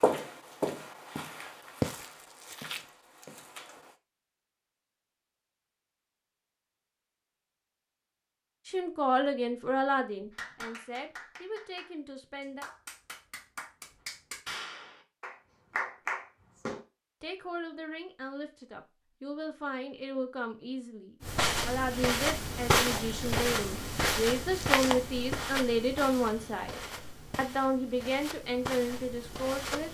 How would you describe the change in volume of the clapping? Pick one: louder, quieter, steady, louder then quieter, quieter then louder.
louder.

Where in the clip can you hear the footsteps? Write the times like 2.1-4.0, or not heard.
0.0-3.9, 21.2-29.9.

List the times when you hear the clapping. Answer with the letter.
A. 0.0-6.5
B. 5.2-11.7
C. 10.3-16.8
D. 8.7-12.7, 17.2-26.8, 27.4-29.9
C.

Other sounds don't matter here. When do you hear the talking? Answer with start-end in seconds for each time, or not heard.
8.7-12.7, 17.2-26.8, 27.4-29.9.